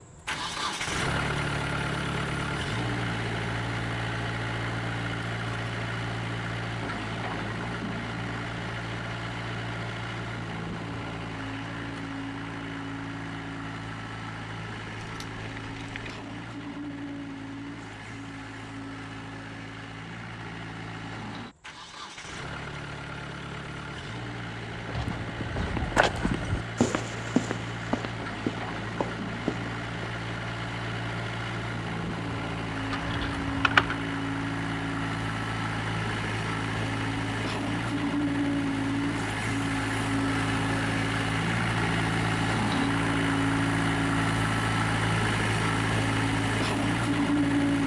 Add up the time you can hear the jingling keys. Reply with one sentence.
The jingling keys can be heard for 2 seconds in total.